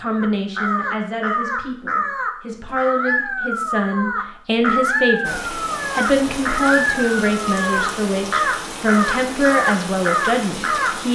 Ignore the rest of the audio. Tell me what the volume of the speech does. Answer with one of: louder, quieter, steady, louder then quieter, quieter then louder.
louder.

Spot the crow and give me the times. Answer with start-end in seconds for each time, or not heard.
0.1-10.9.